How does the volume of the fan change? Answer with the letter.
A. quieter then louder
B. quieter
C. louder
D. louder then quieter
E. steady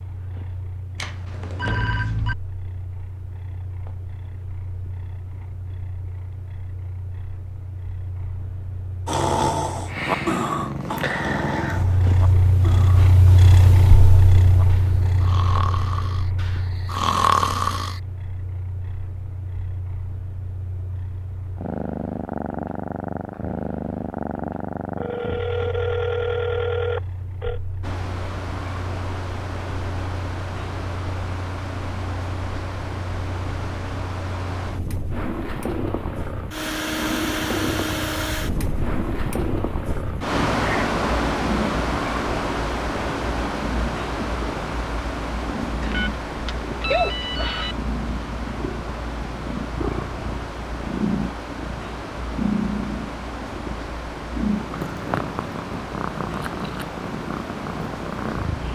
D.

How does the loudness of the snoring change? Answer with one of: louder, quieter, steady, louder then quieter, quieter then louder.
quieter then louder.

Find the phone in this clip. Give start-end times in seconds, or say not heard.
0.9-2.4, 24.9-27.6, 45.8-47.8.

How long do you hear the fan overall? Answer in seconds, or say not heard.
31 s.